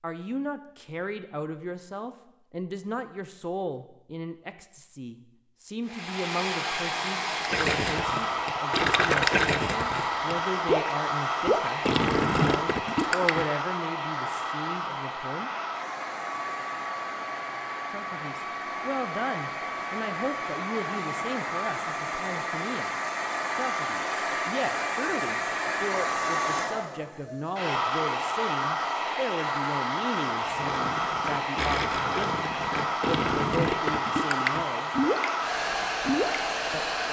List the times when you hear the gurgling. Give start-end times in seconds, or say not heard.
7.4-13.4, 30.4-36.6.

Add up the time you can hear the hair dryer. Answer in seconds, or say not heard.
31 s.